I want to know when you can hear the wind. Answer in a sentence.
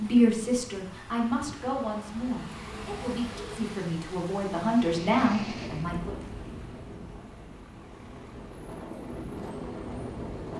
The wind can be heard from 4.8 to 10.5 s.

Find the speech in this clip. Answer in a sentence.
You can hear the speech from 0.0 to 6.2 s.